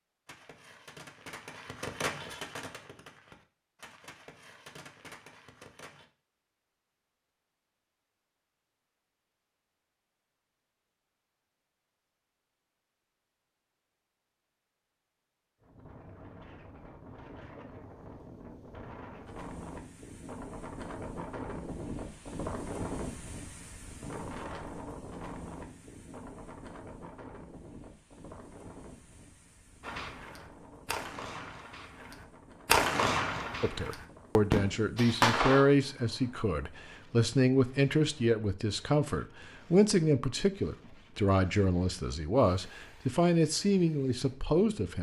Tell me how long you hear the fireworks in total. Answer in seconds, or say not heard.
12 s.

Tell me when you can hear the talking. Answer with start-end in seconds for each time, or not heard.
33.6-44.9.